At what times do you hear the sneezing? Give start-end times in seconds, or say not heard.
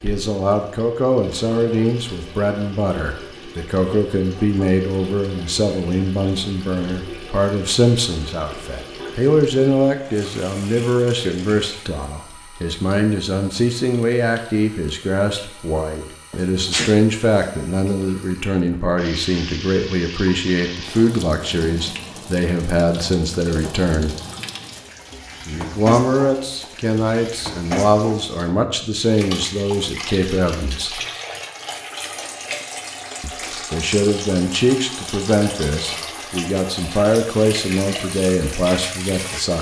16.3-17.9.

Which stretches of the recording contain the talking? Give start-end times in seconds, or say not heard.
0.0-24.1, 25.4-31.0, 33.2-39.5.